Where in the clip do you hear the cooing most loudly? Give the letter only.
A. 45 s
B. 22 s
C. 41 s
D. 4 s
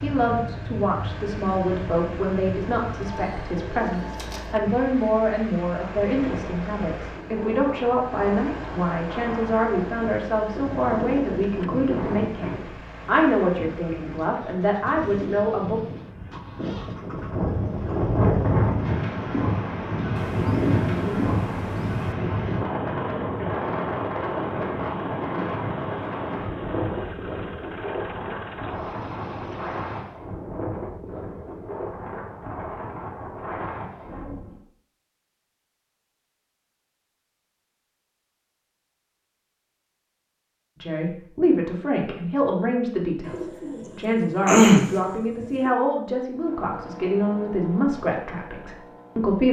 A.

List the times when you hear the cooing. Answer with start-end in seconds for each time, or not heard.
2.8-4.5, 20.1-22.1, 43.2-45.7.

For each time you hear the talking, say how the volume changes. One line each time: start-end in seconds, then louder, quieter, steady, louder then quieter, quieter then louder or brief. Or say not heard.
0.0-15.8 steady
40.8-49.4 steady.